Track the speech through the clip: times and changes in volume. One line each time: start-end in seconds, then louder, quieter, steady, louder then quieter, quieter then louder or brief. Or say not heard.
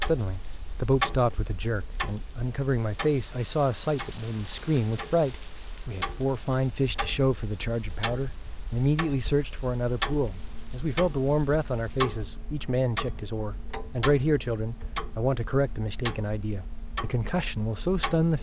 0.0-18.3 steady.